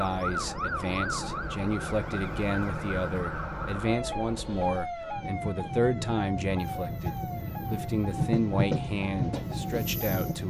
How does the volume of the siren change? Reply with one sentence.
The loudness of the siren goes down.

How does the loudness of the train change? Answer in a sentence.
The volume of the train goes up.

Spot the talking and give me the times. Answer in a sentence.
The talking can be heard from 0.0 to 10.4 s.